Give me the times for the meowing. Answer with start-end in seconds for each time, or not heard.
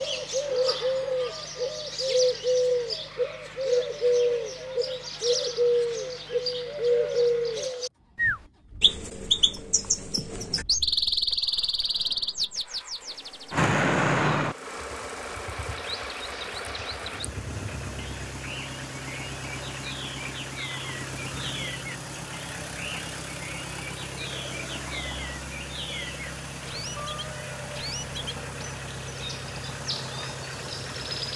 26.9-27.8.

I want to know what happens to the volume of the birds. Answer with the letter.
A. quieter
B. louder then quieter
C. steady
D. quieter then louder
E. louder
A.